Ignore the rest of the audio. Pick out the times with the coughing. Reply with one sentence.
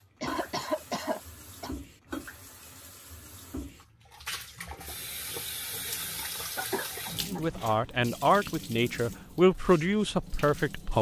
You can hear the coughing from 0.2 to 1.7 s and from 6.5 to 7.5 s.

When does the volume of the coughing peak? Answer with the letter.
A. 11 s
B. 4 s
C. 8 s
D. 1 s
D.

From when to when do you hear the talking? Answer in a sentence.
You can hear the talking from 7.3 to 10.9 s.